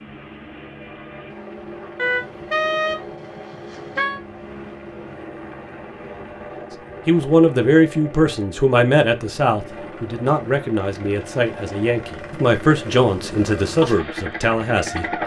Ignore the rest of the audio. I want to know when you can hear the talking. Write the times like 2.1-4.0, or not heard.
7.0-15.2.